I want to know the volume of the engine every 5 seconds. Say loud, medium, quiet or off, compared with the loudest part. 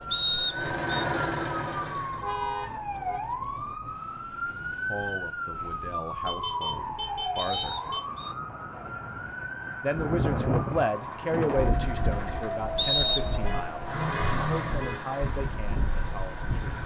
loud, off, loud, medium.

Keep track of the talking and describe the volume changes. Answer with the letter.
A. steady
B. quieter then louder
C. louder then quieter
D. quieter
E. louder
C.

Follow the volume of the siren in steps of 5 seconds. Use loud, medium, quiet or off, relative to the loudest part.
loud, loud, loud, off.